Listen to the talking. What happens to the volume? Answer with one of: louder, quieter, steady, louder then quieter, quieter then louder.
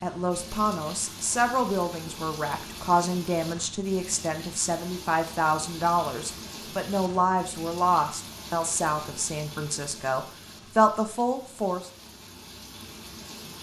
steady.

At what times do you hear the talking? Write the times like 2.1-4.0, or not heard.
0.0-11.9.